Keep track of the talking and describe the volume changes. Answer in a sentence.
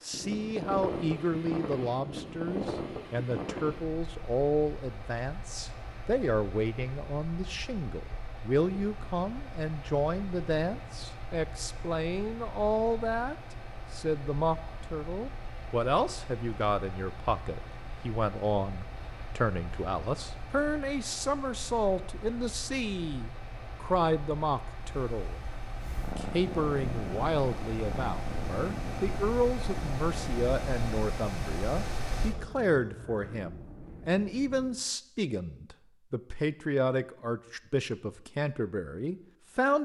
The volume of the talking stays about the same.